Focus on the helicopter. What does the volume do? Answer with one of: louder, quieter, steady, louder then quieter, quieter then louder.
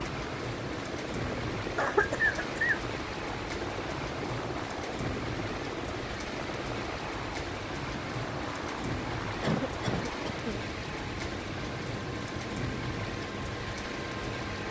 steady.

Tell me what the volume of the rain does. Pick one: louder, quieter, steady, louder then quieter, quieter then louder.
steady.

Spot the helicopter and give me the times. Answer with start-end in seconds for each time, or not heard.
0.0-14.6.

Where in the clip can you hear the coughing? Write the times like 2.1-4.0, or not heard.
1.8-2.8, 9.4-10.6.